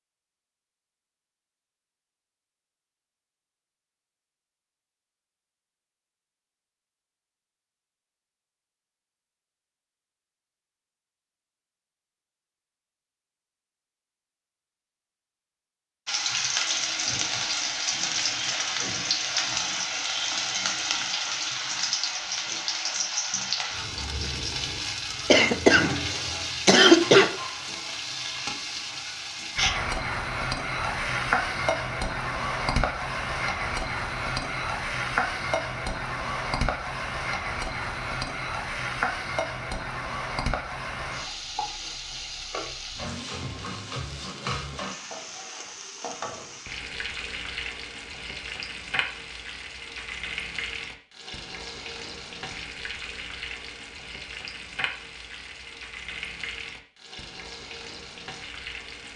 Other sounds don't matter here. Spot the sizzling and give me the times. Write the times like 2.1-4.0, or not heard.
16.1-59.1.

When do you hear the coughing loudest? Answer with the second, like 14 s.
27 s.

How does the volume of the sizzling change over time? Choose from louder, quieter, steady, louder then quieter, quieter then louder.
quieter.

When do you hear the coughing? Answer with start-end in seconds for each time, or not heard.
25.3-27.3.